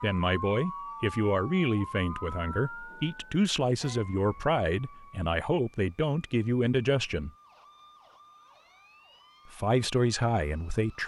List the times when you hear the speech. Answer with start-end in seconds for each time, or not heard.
0.0-7.3, 9.4-11.0.